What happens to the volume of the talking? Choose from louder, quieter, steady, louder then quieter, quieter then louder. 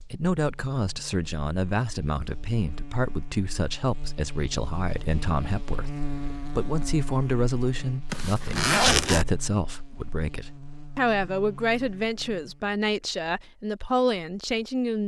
steady.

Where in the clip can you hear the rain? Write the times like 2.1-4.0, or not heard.
not heard.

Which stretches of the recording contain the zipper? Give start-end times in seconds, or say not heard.
8.1-9.2.